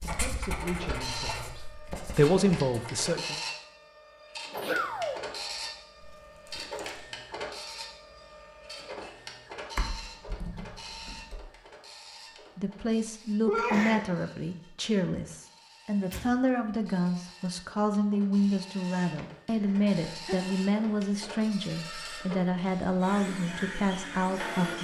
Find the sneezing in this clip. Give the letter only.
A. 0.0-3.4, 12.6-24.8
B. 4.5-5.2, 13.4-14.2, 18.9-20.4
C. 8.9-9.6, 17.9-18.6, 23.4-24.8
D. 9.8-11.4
B.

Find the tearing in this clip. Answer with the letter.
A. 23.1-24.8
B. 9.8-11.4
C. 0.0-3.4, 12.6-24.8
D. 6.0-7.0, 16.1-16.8
D.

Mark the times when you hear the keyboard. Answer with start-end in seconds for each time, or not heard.
9.8-11.4.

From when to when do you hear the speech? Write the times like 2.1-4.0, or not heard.
0.0-3.4, 12.6-24.8.